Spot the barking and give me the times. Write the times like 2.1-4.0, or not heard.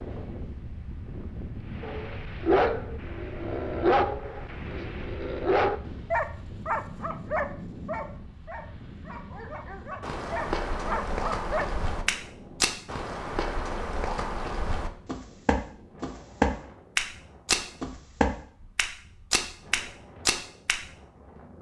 1.8-11.7.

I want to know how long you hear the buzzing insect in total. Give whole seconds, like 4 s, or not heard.
not heard.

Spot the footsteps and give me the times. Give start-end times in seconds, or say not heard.
10.0-20.8.